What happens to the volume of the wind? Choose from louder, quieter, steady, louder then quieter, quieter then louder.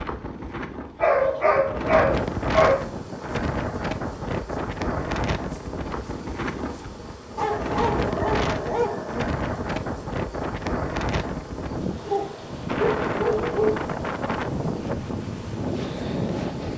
steady.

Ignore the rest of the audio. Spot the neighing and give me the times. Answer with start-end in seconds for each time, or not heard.
not heard.